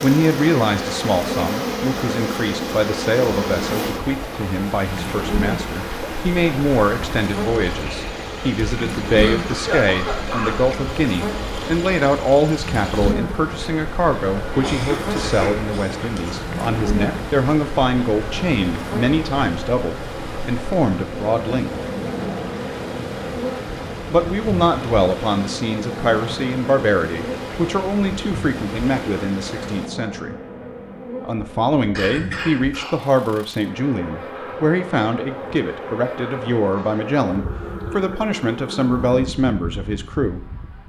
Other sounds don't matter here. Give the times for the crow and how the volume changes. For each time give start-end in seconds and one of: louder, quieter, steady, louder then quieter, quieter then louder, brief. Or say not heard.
not heard.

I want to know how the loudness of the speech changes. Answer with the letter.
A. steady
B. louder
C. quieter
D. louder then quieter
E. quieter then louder
A.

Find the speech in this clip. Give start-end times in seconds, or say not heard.
0.0-21.7, 24.1-30.4, 31.2-40.4.